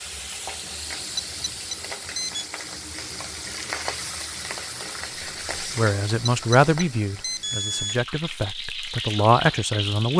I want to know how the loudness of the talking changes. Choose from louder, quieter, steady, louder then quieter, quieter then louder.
quieter then louder.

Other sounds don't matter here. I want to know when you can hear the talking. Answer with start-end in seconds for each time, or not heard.
5.6-10.1.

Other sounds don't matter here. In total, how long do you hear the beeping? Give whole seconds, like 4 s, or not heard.
3 s.